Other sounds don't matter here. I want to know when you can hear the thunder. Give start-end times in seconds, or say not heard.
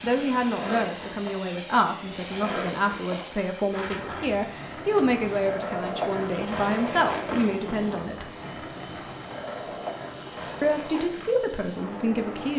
7.2-8.6.